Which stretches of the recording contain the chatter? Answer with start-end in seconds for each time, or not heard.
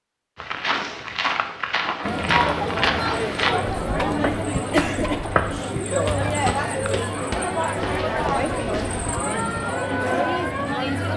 2.0-11.1.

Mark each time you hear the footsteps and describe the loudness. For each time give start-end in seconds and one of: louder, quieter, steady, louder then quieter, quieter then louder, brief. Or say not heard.
0.3-9.2 quieter.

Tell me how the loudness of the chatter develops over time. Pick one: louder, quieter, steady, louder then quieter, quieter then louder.
steady.